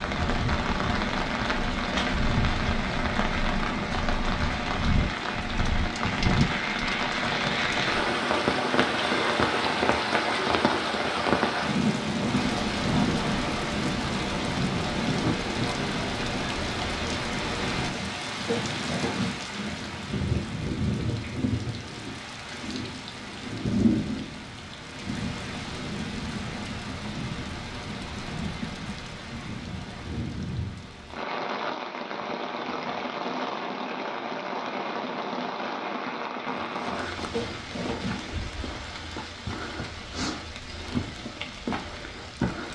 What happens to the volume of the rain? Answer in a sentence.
The loudness of the rain goes down.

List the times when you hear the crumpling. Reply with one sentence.
You can hear the crumpling from 17.9 to 19.6 s and from 36.5 to 38.4 s.